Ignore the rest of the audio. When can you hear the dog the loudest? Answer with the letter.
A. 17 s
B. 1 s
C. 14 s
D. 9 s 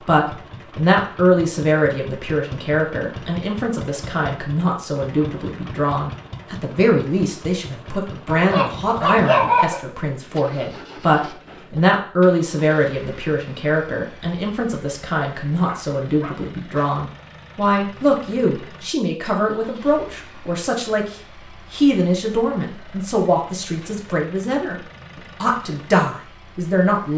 D.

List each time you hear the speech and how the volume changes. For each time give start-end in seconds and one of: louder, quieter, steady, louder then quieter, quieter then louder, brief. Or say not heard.
0.0-27.1 steady.